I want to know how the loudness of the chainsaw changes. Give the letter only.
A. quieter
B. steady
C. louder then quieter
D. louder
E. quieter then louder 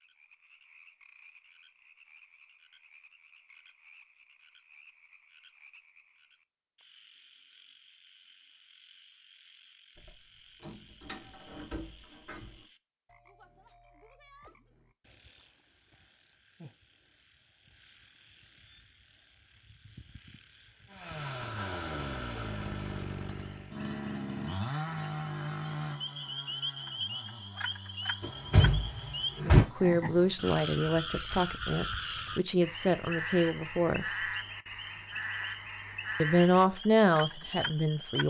A.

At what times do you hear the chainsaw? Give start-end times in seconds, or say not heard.
20.9-30.4.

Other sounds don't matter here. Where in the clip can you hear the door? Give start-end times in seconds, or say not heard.
9.9-12.7, 28.2-29.6.